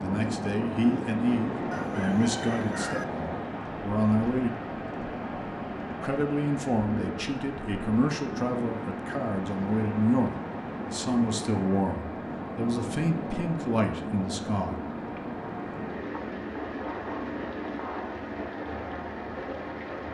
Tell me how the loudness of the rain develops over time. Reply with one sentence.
The volume of the rain stays about the same.